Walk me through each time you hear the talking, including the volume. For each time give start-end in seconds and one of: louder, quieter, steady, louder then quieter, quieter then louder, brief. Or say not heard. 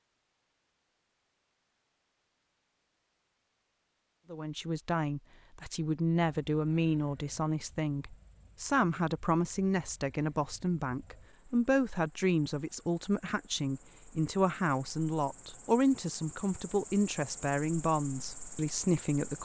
4.3-19.4 steady.